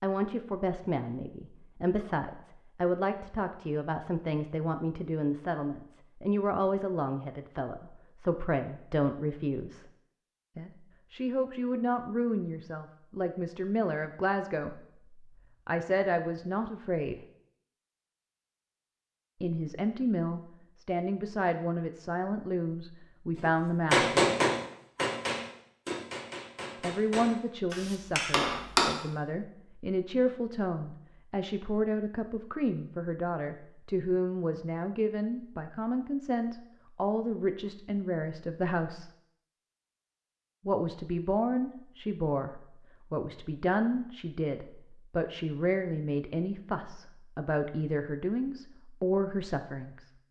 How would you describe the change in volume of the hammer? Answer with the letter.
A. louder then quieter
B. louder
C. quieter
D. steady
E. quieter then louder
E.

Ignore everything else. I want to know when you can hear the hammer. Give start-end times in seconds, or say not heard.
23.4-28.9.